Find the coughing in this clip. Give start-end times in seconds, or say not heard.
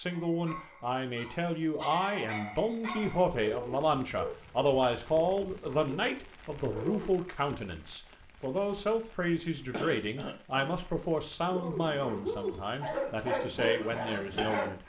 9.7-10.8.